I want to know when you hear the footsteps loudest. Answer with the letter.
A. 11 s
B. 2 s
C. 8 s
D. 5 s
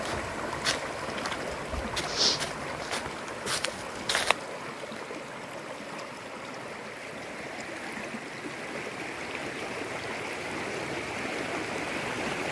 B.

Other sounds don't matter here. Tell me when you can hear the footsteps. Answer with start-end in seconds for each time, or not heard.
0.0-4.3.